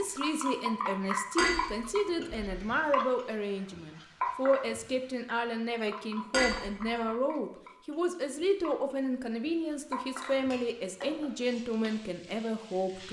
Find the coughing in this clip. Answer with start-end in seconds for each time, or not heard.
not heard.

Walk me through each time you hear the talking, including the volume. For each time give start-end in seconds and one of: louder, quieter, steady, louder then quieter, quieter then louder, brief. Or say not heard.
0.0-13.0 steady.